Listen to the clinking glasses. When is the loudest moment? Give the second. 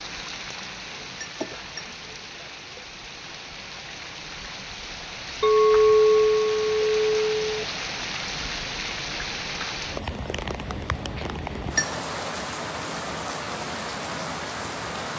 6 s.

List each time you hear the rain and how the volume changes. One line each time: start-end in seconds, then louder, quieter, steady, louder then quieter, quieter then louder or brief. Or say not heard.
0.0-15.1 louder.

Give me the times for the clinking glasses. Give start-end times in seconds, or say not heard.
1.2-1.9, 5.4-7.6, 11.2-11.9.